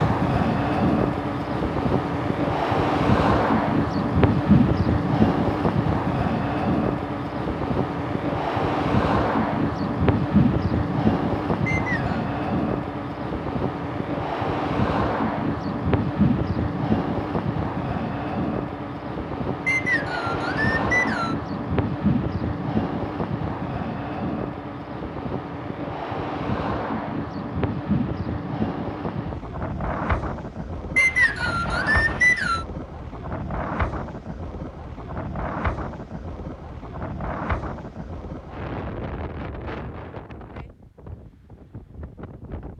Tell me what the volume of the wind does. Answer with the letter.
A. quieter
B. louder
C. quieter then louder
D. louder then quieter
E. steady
A.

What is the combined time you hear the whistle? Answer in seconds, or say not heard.
4 s.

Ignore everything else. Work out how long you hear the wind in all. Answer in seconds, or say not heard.
43 s.